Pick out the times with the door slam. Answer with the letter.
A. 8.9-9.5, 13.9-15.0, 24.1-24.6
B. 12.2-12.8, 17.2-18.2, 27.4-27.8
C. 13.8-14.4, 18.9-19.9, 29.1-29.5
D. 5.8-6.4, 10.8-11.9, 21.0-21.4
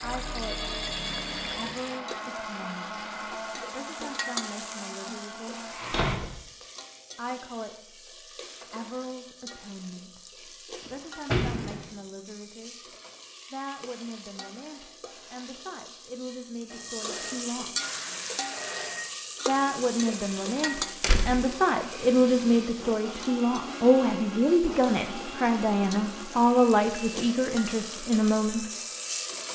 D.